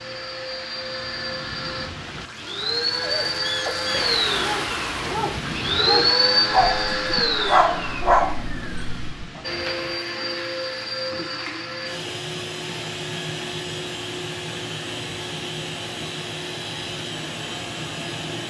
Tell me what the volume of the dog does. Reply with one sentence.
The volume of the dog goes up.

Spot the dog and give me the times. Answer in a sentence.
You can hear the dog from 3.2 to 9.2 s.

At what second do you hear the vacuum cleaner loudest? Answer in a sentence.
The volume of the vacuum cleaner peaks at 6 seconds.